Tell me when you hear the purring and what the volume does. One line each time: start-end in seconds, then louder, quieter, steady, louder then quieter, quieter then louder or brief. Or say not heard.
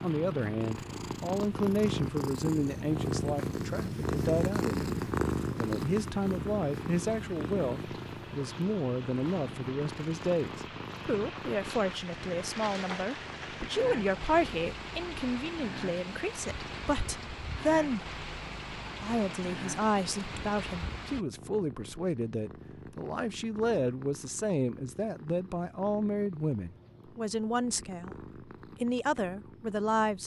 0.0-30.2 quieter.